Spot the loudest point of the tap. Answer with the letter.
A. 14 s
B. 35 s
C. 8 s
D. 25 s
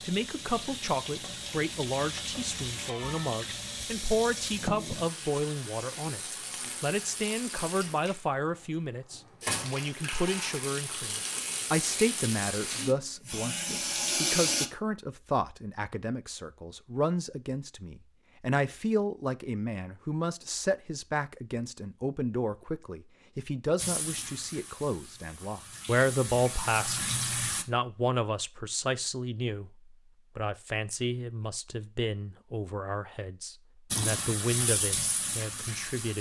A.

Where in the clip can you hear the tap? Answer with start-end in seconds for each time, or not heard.
0.0-14.7, 23.8-27.6, 33.9-36.1.